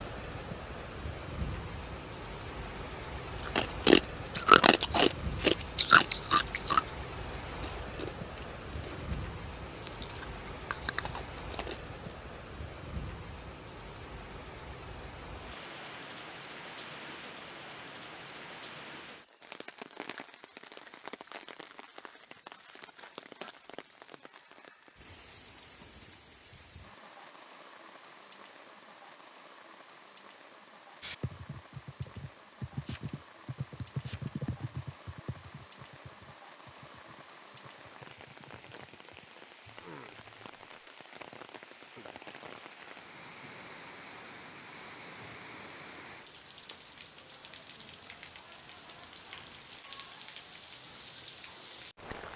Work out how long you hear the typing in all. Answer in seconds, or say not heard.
10 s.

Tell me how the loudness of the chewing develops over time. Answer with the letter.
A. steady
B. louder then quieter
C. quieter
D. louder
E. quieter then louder
E.